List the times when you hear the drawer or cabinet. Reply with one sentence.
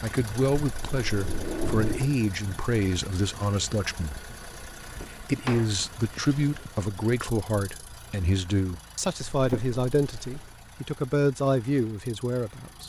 The drawer or cabinet can be heard from 0.6 to 2.1 s, from 5.0 to 6.7 s and from 9.3 to 10.5 s.